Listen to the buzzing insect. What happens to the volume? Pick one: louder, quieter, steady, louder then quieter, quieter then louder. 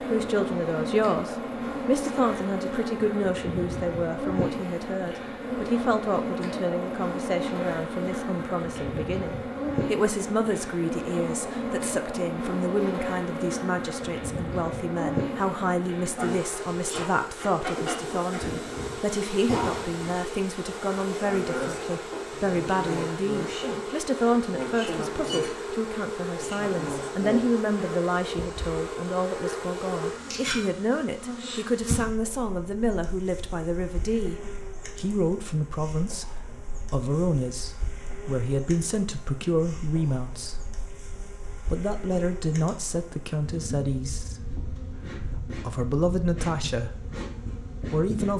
quieter.